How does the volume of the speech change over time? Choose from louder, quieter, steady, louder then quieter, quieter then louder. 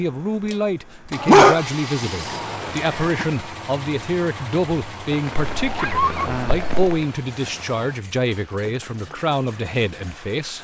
steady.